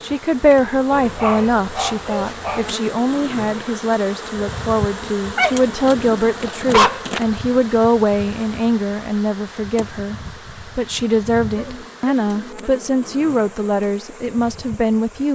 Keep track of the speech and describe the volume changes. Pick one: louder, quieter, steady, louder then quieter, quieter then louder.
steady.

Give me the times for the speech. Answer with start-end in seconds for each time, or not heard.
0.0-10.2, 10.8-15.3.